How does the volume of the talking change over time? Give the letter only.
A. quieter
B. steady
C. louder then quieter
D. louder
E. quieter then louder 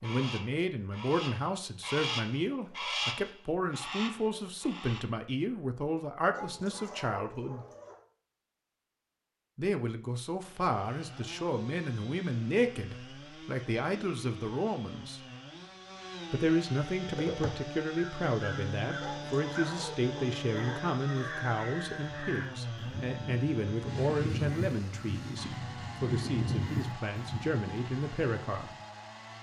B.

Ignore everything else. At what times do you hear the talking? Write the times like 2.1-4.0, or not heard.
0.0-7.7, 9.6-15.2, 16.3-28.7.